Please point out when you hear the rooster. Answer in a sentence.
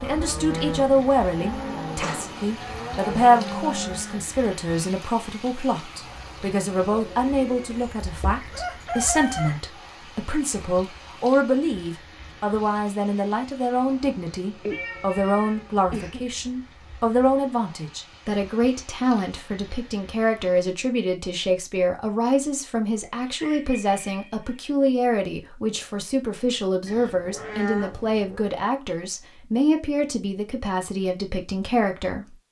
The rooster can be heard from 7.7 to 9.6 s and from 23.1 to 24.6 s.